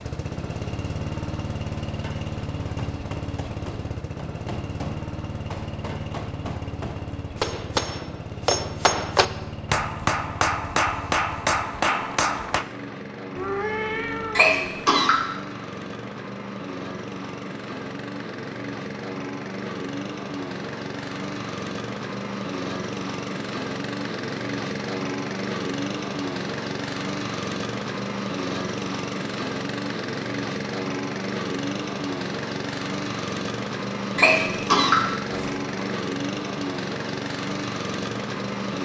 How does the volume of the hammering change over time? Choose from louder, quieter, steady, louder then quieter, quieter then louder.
louder.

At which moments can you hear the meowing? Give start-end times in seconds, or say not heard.
13.3-14.6.